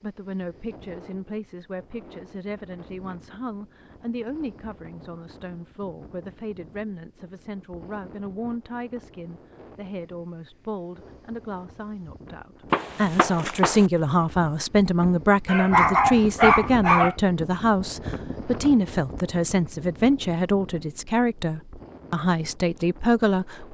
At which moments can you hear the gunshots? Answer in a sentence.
You can hear the gunshots from 12.7 to 13.9 s.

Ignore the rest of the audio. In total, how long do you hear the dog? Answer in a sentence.
You can hear the dog for 2 seconds altogether.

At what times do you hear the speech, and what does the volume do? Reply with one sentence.
You can hear the speech from 0.0 to 23.7 s, getting louder.